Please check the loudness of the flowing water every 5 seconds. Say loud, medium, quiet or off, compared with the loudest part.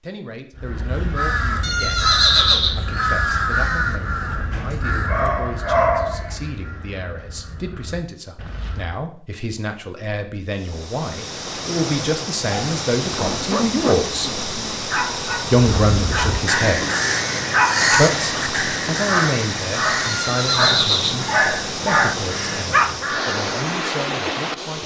off, off, loud, loud, loud.